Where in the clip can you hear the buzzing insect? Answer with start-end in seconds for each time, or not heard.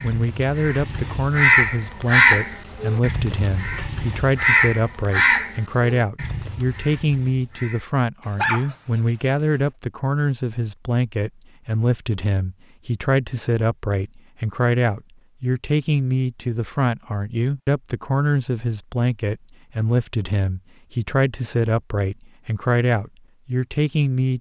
not heard.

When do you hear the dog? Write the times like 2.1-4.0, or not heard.
8.2-9.6.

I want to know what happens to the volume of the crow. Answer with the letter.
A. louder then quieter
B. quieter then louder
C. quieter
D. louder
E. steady
C.